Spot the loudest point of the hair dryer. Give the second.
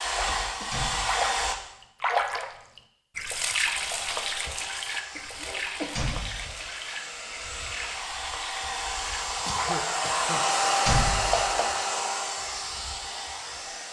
11 s.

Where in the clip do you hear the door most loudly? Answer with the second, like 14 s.
11 s.